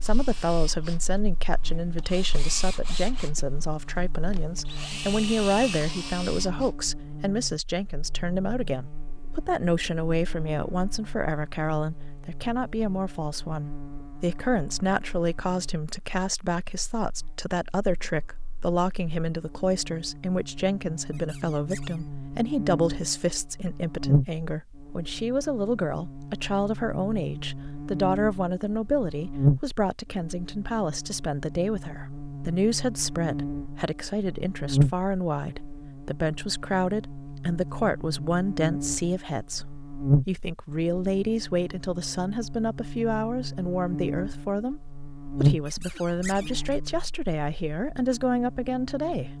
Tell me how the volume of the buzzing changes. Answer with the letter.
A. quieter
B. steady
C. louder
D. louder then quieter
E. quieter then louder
C.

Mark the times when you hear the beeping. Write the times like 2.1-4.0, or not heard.
not heard.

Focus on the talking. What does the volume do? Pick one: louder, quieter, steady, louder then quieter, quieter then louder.
steady.